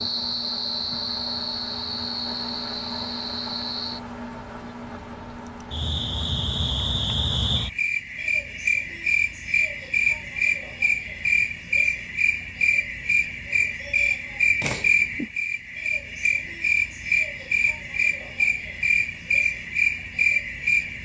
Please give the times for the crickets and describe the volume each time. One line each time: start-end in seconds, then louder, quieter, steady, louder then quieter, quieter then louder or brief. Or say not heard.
0.0-21.0 louder.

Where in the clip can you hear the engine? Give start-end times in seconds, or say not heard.
0.0-7.5.